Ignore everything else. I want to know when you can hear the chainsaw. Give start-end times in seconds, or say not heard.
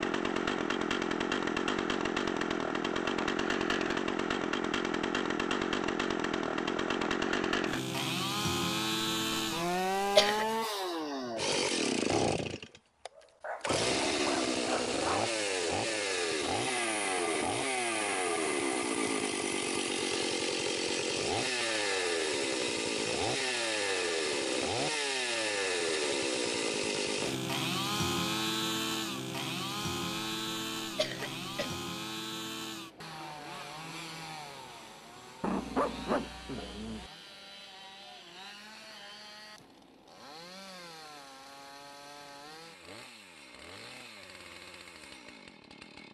0.0-46.0.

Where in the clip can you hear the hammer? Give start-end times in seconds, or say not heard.
not heard.